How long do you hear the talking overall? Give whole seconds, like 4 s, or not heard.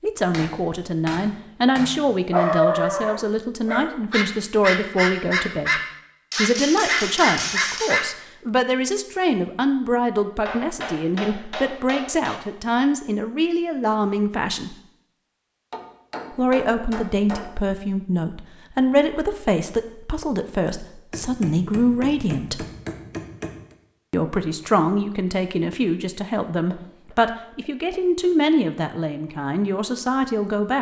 28 s.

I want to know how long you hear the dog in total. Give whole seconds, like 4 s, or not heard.
6 s.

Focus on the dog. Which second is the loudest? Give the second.
3 s.